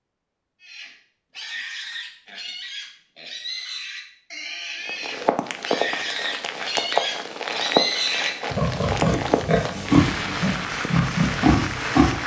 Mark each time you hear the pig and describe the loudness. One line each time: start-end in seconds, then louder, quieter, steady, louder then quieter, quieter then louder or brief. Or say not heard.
0.6-12.2 louder.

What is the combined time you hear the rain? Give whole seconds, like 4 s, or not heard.
7 s.